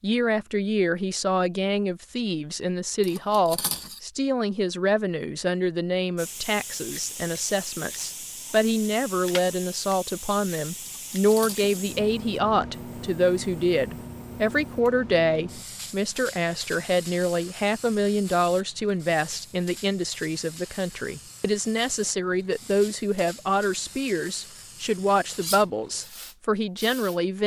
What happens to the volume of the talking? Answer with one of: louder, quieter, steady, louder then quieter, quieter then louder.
steady.